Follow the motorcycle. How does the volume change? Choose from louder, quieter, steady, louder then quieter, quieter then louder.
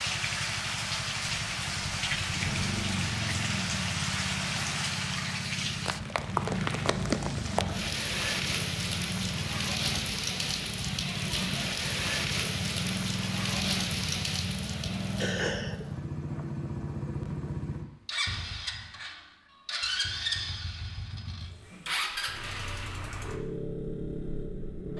steady.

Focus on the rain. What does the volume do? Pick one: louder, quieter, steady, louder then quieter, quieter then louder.
steady.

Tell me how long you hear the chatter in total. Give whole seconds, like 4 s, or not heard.
not heard.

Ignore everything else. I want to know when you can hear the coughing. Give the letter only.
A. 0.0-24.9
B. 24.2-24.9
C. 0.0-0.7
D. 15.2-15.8
D.